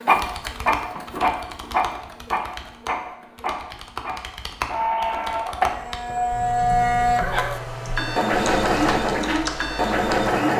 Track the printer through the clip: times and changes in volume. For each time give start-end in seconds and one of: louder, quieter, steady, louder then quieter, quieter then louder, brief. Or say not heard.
0.0-10.5 quieter then louder.